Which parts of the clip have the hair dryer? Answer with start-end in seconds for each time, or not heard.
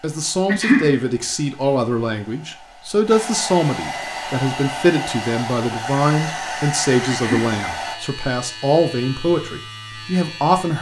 0.0-8.0.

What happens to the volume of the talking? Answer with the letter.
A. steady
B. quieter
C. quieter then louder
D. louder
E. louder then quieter
A.